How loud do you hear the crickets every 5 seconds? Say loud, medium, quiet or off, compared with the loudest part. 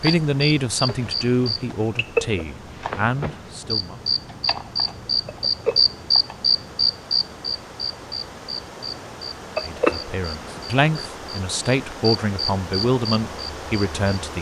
loud, loud, medium.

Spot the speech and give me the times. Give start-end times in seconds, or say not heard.
0.0-4.0, 9.6-14.3.